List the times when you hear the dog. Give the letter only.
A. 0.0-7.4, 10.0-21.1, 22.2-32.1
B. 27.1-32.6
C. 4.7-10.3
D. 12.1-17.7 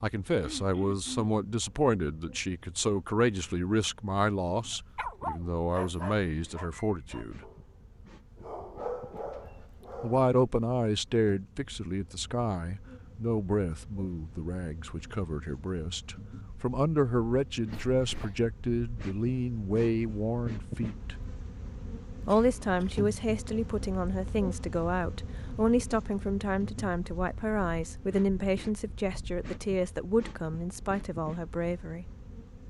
C.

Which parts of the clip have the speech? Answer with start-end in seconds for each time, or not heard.
0.0-7.4, 10.0-21.1, 22.2-32.1.